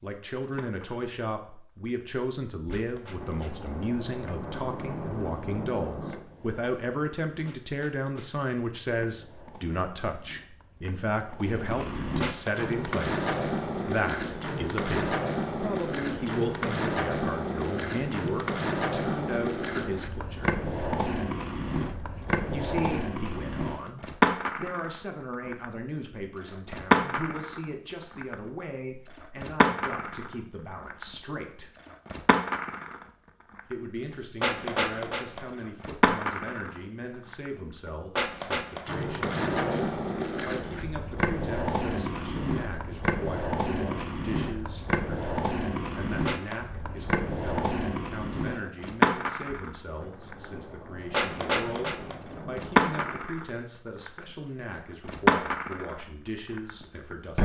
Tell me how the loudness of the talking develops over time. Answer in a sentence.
The volume of the talking goes down.